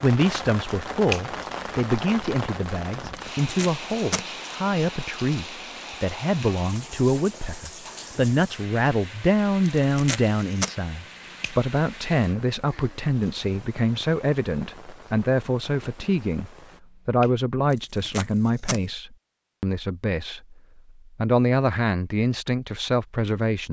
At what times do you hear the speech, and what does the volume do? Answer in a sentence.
You can hear the speech from 0.0 to 23.6 s, at a steady volume.